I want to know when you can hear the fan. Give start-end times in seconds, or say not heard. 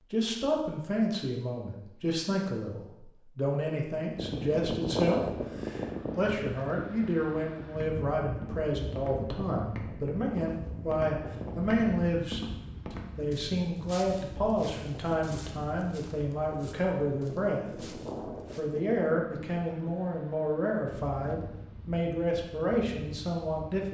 4.1-23.8.